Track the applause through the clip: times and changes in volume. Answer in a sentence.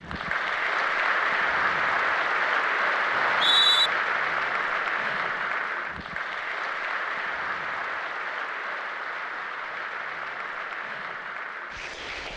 The applause can be heard from 0.0 to 12.3 s, getting quieter.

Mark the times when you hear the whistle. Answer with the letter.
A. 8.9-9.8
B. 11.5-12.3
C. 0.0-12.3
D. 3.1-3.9
D.